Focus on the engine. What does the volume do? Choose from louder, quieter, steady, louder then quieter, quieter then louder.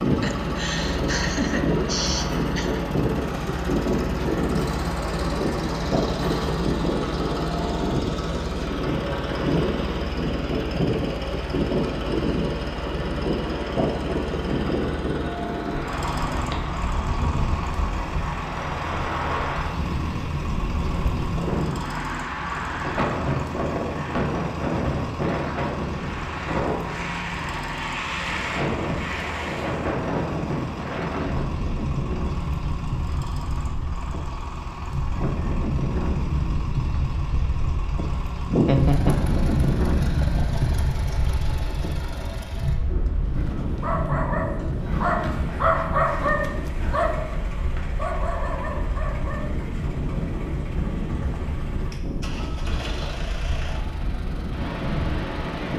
quieter.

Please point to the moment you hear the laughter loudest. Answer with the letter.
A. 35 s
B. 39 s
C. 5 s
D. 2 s
B.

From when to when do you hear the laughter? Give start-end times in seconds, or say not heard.
0.1-2.8, 38.5-39.3.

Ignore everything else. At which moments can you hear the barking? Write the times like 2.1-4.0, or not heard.
43.4-49.6.